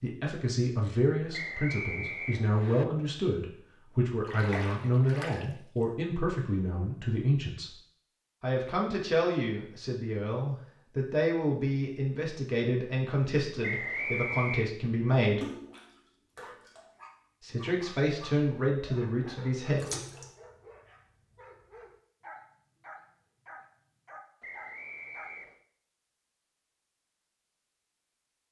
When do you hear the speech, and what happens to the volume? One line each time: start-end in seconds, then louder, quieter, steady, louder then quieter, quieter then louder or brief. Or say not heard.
0.0-7.8 steady
8.4-15.4 steady
17.4-19.9 brief.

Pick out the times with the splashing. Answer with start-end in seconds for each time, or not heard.
4.2-5.5, 15.4-16.9, 19.8-20.2.